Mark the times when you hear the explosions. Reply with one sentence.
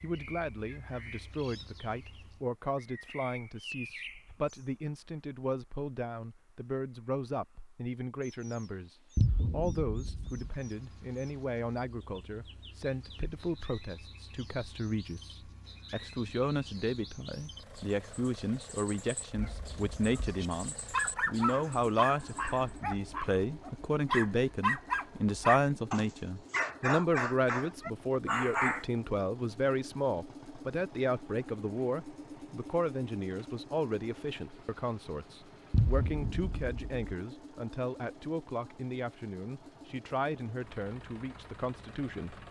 You can hear the explosions from 9.2 to 10.6 s and from 35.7 to 37.1 s.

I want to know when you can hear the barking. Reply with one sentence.
The barking can be heard from 19.4 to 28.9 s.